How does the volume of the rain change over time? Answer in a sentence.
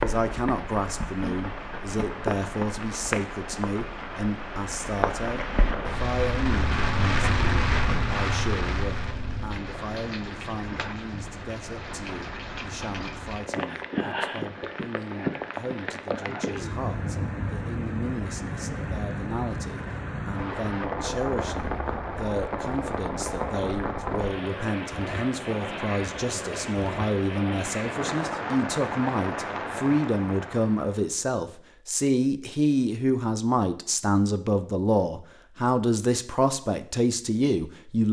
The loudness of the rain stays about the same.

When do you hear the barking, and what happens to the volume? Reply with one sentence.
You can't hear the barking here.